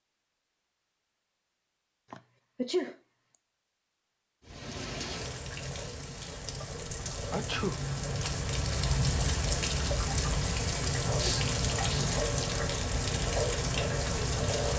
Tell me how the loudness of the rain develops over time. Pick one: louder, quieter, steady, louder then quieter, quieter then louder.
louder.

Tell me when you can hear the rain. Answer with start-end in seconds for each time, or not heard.
4.5-14.7.